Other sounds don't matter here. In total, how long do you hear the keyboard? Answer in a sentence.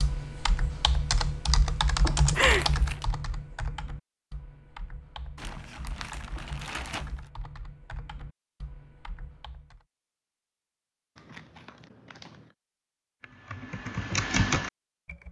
You can hear the keyboard for 12 seconds altogether.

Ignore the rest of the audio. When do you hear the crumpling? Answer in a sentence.
The crumpling can be heard from 2.3 to 3.0 s, from 5.3 to 7.1 s and from 11.2 to 12.5 s.